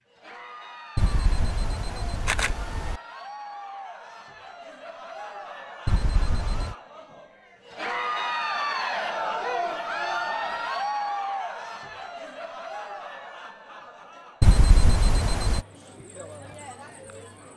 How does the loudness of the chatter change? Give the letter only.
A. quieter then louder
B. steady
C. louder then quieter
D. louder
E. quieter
C.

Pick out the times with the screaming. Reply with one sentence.
The screaming can't be heard in this clip.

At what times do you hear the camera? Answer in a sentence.
You can hear the camera from 0.9 to 3.0 s, from 5.8 to 6.8 s and from 14.4 to 15.7 s.